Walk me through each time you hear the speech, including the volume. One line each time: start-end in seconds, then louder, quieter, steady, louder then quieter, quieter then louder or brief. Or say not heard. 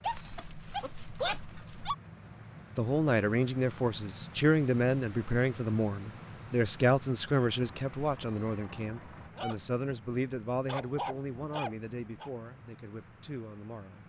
2.8-14.0 quieter.